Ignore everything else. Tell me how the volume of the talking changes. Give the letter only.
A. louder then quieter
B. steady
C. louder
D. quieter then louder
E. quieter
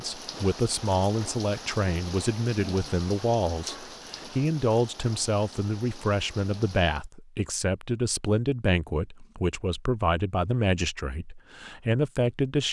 B.